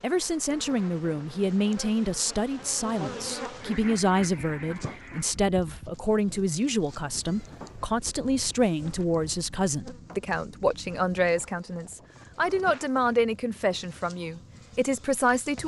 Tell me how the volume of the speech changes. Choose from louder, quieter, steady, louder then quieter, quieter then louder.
steady.